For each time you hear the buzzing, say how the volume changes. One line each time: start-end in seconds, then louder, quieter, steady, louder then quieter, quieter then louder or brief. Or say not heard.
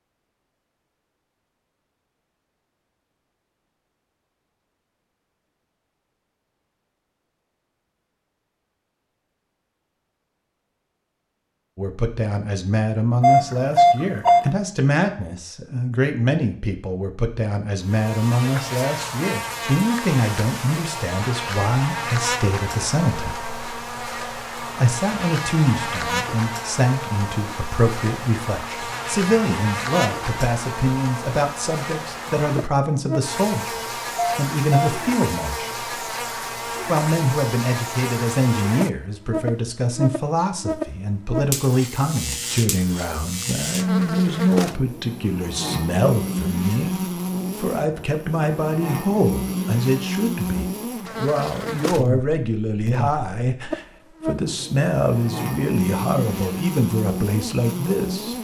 17.8-58.3 steady.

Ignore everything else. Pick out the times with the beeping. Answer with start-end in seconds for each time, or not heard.
13.2-14.4, 34.1-34.9.